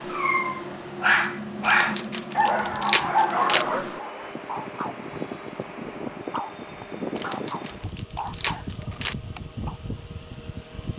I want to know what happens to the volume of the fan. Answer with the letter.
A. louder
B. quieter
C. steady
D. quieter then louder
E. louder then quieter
C.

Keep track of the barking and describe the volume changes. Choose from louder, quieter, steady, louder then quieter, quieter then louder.
quieter.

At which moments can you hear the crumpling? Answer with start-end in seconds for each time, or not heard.
1.6-3.6, 7.2-9.2.